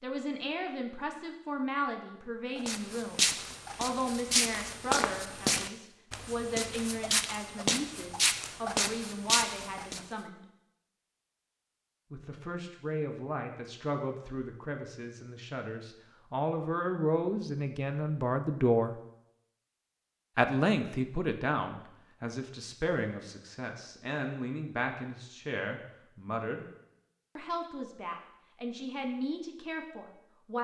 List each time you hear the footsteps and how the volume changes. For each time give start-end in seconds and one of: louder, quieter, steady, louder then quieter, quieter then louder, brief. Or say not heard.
2.5-10.1 quieter then louder.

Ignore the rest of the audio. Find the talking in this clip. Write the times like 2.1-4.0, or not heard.
0.0-10.4, 12.1-18.9, 20.4-26.6, 27.4-30.5.